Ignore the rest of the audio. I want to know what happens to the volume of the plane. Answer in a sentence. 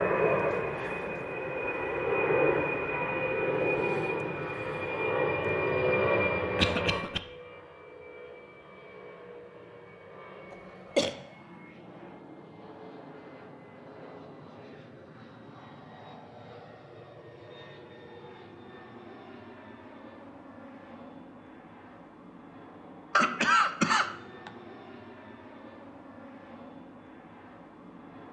The volume of the plane goes down.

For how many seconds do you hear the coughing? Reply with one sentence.
You can hear the coughing for 3 seconds altogether.